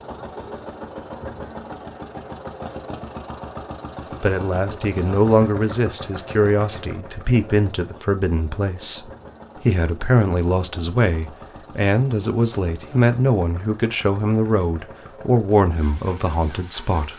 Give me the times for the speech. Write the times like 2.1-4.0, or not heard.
4.2-17.1.